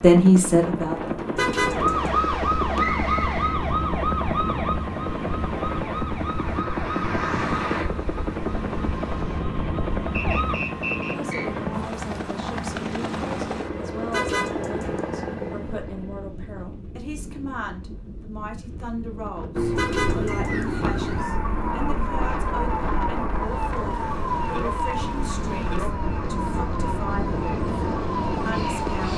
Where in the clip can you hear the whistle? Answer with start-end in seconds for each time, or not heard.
2.8-3.6, 10.1-11.4, 20.2-21.4.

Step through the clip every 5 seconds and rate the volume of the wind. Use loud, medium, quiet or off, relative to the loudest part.
loud, medium, medium, medium, loud, loud.